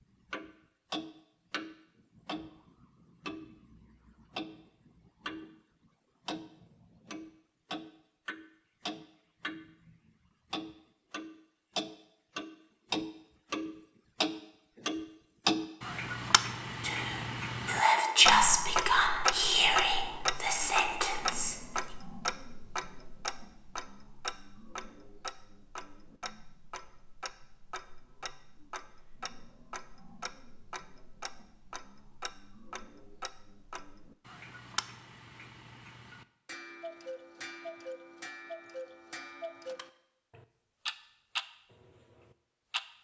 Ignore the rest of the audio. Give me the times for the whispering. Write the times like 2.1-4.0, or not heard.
16.8-21.6.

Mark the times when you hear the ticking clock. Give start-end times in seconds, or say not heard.
0.3-5.5, 6.2-42.9.